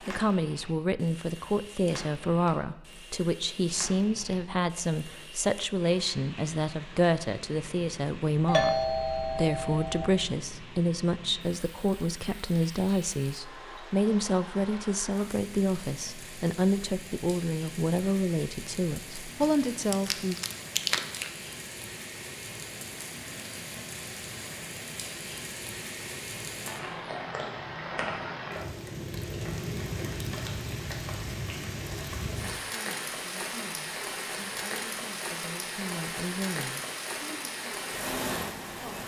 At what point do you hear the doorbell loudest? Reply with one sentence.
The loudest moment of the doorbell is at 9 seconds.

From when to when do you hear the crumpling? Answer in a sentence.
The crumpling can be heard from 19.4 to 21.3 s.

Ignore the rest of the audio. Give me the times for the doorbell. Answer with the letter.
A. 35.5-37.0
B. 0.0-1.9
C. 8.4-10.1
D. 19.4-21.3
C.